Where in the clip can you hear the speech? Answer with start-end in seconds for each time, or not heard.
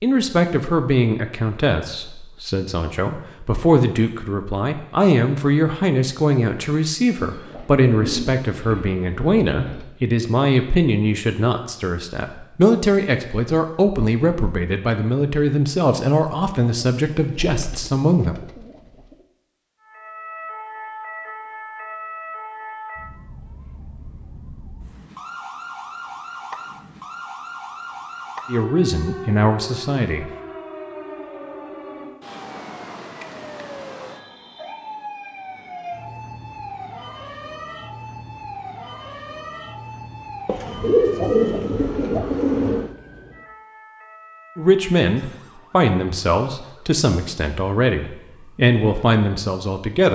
0.0-18.4, 28.4-30.3, 44.5-50.1.